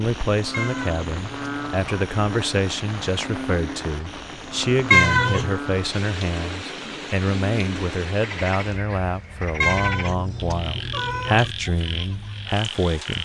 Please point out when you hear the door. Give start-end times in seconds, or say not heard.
not heard.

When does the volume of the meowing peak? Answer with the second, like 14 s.
5 s.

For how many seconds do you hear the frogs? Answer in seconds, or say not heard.
13 s.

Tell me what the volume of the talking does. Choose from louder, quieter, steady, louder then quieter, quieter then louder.
steady.